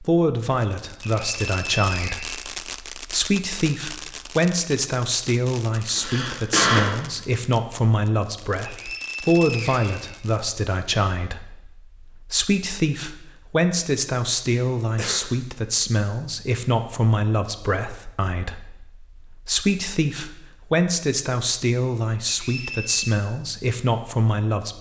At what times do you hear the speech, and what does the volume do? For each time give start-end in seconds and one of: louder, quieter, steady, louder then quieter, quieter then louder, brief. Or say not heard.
0.0-24.7 steady.